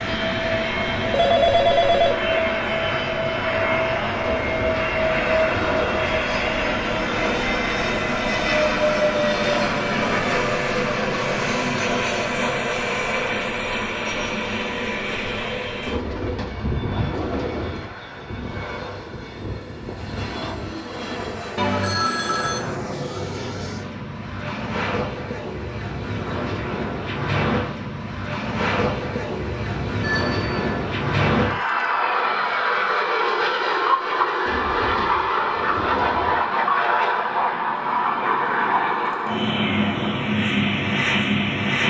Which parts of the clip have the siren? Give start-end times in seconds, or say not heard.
not heard.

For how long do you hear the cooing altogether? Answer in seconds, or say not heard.
6 s.